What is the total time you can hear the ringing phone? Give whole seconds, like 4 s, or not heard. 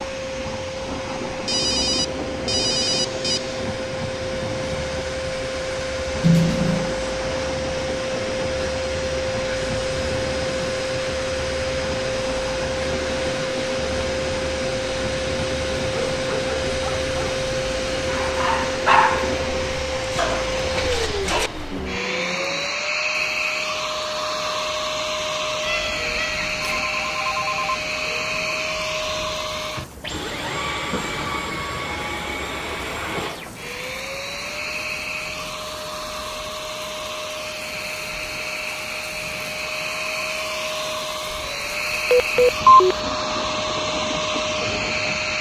5 s.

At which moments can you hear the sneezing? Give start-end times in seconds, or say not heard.
not heard.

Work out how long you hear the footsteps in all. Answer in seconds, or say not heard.
not heard.